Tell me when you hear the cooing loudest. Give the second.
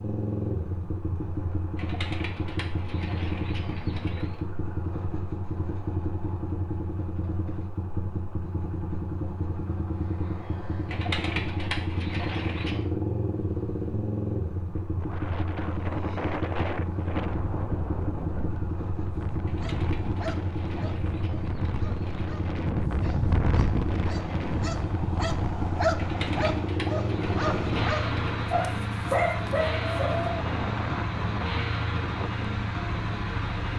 11 s.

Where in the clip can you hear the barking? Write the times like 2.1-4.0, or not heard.
19.4-30.2.